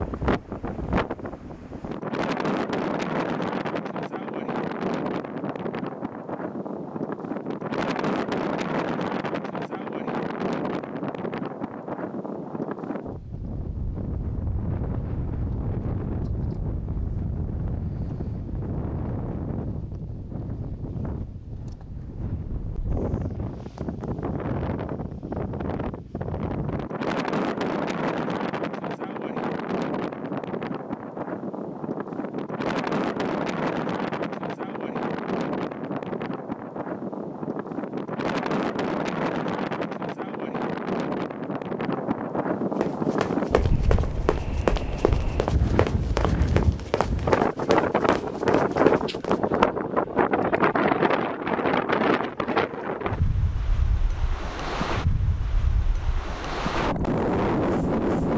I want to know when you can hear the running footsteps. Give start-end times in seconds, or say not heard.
42.6-49.4.